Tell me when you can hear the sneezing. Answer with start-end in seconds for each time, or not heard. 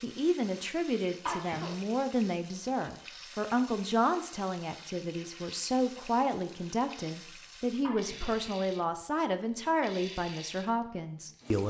1.2-1.8, 7.8-8.3.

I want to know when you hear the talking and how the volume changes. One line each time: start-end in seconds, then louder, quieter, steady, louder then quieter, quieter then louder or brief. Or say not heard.
0.0-11.6 steady.